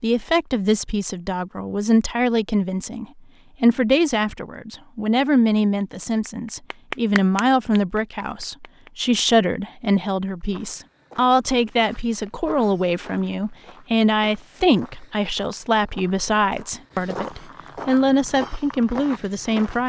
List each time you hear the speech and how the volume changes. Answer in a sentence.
You can hear the speech from 0.0 to 19.8 s, at a steady volume.